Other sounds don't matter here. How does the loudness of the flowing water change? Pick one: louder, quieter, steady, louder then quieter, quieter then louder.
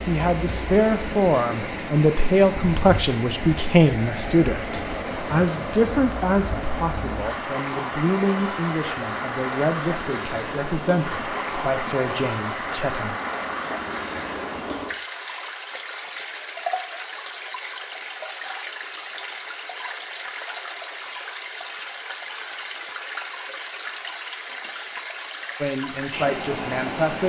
steady.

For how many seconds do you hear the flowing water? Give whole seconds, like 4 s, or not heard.
27 s.